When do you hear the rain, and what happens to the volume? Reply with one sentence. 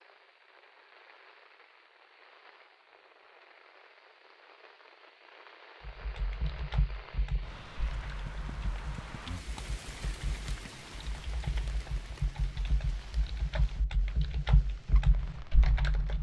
The rain can be heard from 0.0 to 16.1 s, getting louder then quieter.